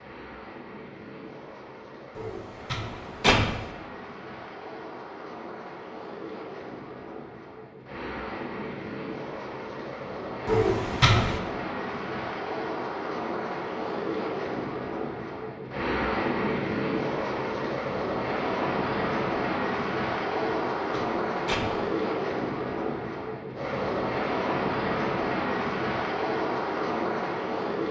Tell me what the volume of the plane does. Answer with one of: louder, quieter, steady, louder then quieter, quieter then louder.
louder.